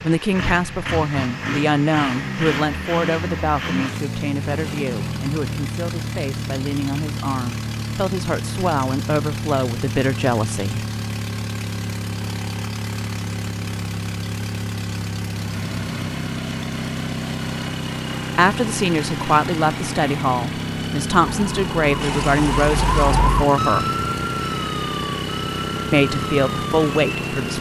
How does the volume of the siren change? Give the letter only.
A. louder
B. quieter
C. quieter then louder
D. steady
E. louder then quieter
E.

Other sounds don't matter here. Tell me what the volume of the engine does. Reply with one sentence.
The loudness of the engine stays about the same.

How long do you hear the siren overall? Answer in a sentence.
You can hear the siren for 6 seconds altogether.